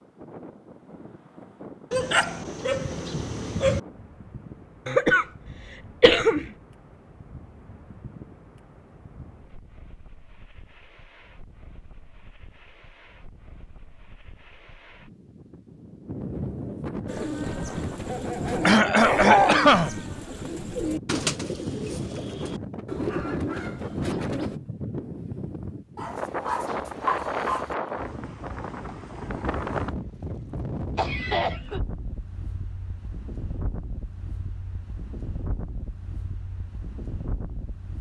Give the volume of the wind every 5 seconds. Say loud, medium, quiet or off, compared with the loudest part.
quiet, quiet, quiet, loud, loud, loud, medium, medium.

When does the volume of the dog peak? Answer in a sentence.
The loudest moment of the dog is at 19 seconds.